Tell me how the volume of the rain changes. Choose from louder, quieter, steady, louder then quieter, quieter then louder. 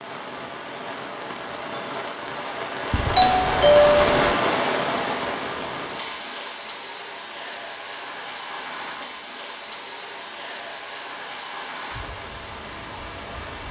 louder then quieter.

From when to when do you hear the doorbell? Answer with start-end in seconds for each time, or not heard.
2.9-4.3.